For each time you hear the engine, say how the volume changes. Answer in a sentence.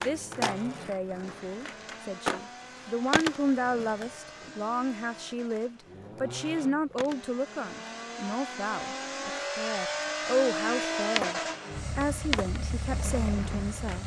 You can hear the engine from 0.0 to 14.0 s, getting louder.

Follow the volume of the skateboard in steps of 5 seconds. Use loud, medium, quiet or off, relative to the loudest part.
loud, quiet, loud.